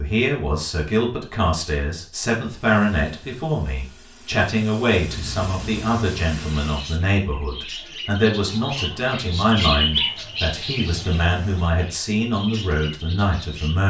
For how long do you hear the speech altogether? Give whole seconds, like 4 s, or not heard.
14 s.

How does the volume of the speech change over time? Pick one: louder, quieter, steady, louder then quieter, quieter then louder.
steady.